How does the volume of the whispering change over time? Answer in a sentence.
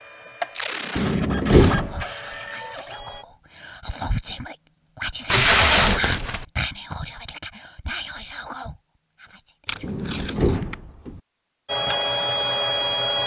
The loudness of the whispering goes up, then down.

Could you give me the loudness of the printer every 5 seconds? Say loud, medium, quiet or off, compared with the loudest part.
medium, off, loud.